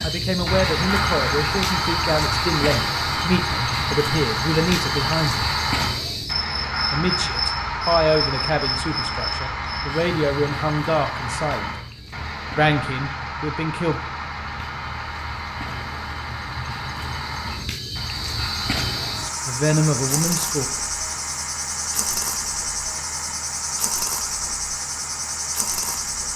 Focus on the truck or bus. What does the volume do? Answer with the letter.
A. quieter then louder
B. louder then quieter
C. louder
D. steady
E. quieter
E.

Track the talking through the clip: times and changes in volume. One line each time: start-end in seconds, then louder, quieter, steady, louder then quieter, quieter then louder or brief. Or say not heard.
0.0-5.5 steady
6.9-11.8 quieter then louder
12.6-14.0 brief
19.4-20.6 brief.